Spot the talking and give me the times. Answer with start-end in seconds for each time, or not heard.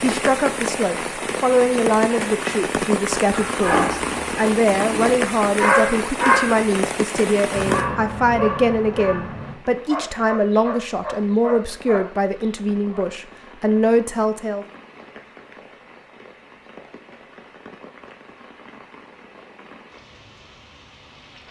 0.0-14.7.